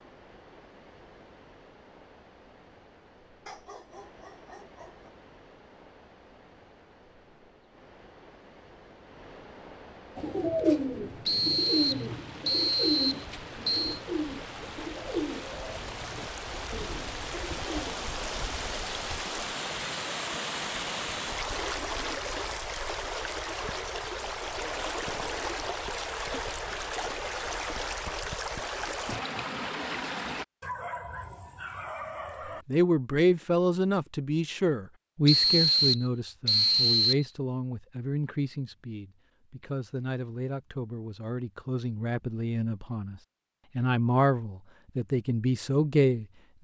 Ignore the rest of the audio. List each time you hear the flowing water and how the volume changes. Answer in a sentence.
You can hear the flowing water from 0.0 to 30.4 s, getting louder.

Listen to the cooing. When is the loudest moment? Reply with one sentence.
The volume of the cooing peaks at 11 seconds.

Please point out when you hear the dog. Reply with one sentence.
The dog can be heard from 3.5 to 5.1 s and from 30.6 to 32.6 s.